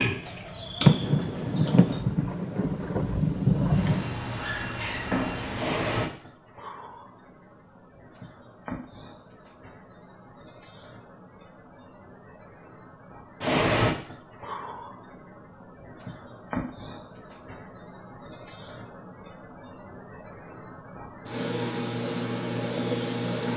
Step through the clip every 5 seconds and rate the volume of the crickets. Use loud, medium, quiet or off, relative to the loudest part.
medium, medium, medium, medium, loud.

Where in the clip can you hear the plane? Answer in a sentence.
The plane can't be heard in this clip.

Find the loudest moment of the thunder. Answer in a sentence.
The loudest moment of the thunder is at 1 second.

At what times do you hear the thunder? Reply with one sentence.
You can hear the thunder from 0.8 to 4.2 s.